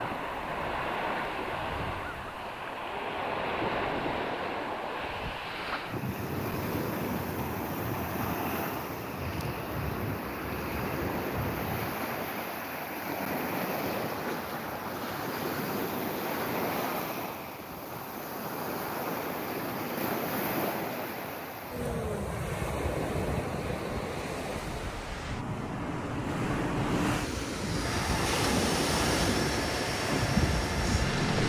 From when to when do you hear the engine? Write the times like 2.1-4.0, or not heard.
27.8-31.4.